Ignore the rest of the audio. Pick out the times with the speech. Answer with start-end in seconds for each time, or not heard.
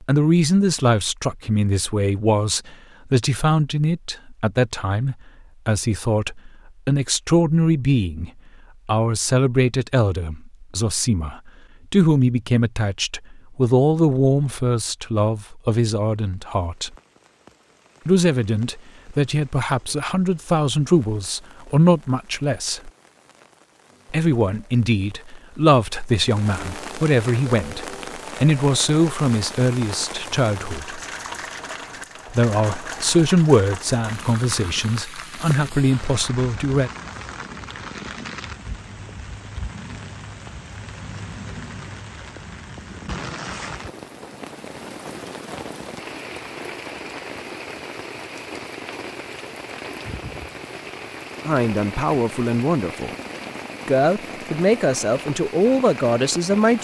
0.0-16.9, 18.1-22.9, 24.1-31.0, 32.3-36.9, 51.5-53.1, 53.9-56.7.